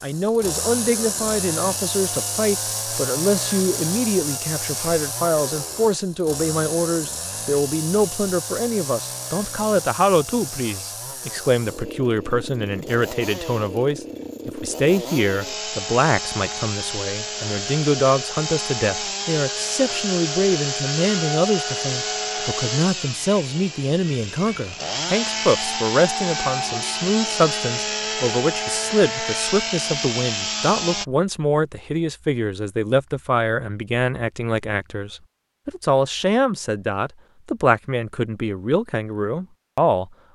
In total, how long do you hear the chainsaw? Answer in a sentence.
The chainsaw can be heard for 31 seconds in total.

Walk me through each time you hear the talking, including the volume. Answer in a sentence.
You can hear the talking from 0.0 to 40.1 s, at a steady volume.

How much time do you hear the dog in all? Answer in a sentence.
The dog can't be heard in this clip.